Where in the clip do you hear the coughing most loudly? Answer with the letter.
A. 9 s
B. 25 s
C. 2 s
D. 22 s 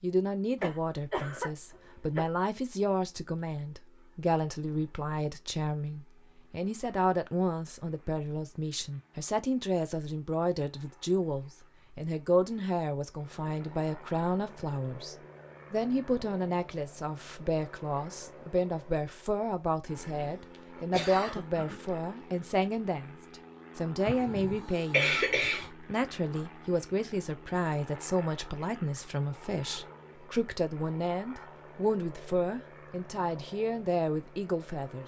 B.